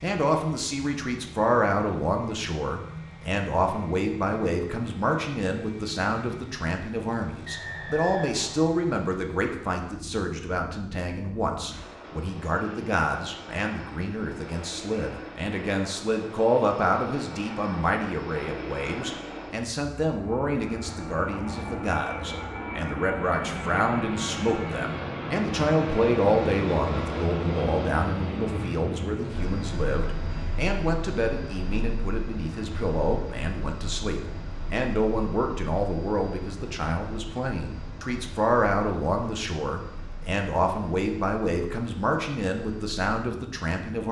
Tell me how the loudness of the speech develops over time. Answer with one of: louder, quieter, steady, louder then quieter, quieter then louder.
steady.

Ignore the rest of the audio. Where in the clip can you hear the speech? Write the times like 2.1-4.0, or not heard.
0.0-44.0.